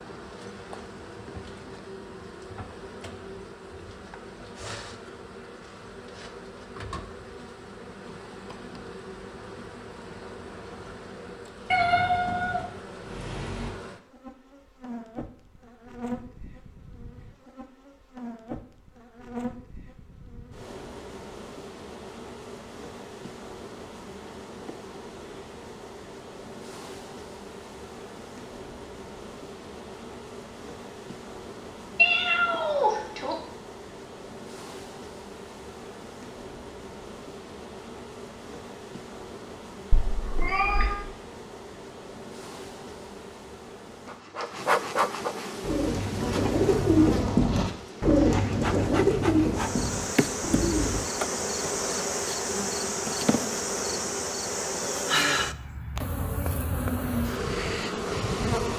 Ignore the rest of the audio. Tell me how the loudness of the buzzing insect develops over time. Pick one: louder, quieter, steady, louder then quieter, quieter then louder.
louder.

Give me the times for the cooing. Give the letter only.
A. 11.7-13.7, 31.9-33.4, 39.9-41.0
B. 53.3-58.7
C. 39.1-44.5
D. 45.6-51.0
D.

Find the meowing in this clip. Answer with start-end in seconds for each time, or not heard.
11.7-13.7, 31.9-33.4, 39.9-41.0.